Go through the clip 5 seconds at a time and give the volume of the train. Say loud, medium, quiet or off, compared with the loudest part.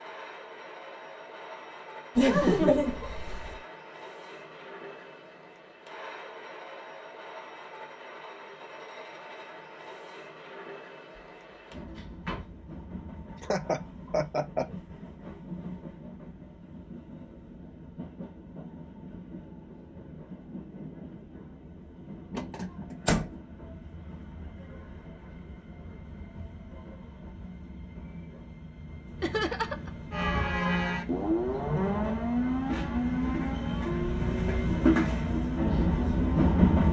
quiet, quiet, quiet, quiet, quiet, quiet, medium, loud.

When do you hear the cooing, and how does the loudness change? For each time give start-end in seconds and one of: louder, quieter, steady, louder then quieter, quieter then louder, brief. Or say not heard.
not heard.